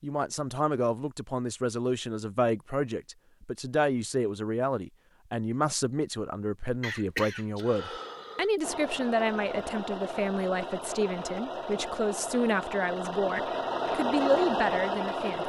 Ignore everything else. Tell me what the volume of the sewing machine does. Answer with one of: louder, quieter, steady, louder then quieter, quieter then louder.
louder.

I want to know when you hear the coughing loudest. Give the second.
7 s.